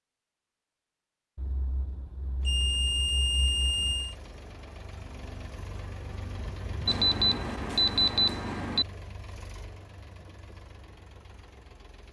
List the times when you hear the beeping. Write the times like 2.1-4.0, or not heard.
1.4-4.2, 6.8-8.8.